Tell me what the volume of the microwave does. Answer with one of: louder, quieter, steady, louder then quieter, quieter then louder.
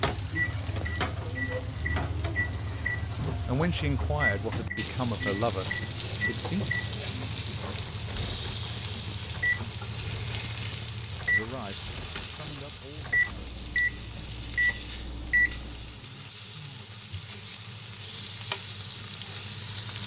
louder.